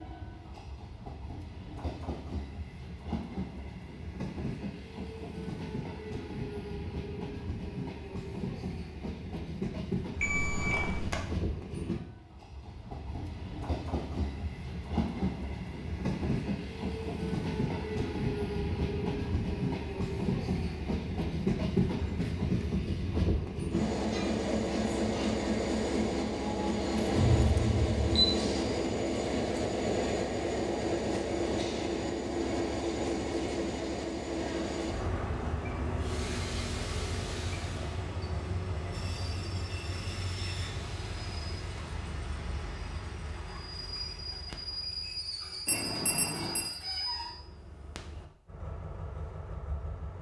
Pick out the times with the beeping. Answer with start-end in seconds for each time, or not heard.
10.2-11.2, 27.1-28.2, 45.6-46.7.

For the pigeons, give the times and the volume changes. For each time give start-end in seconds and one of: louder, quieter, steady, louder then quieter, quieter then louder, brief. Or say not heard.
not heard.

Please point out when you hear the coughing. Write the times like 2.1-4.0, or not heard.
not heard.